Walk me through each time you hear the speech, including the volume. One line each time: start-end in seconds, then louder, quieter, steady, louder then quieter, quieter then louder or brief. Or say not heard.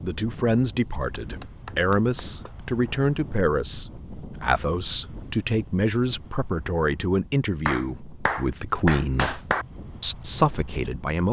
0.0-9.4 steady
10.0-11.2 brief.